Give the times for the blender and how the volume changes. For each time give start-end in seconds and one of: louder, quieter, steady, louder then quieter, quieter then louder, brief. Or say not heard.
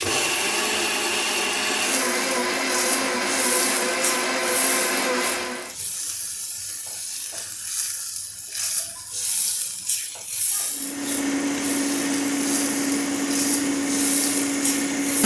0.0-5.8 steady
10.7-15.2 steady.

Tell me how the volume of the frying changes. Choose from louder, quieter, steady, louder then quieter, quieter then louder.
steady.